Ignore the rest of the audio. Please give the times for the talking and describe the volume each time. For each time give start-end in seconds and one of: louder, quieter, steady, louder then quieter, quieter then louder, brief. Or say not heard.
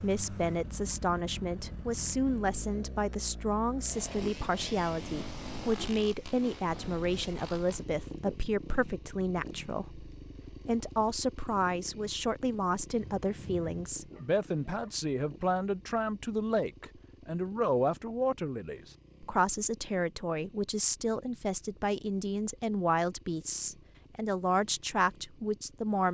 0.0-26.0 steady.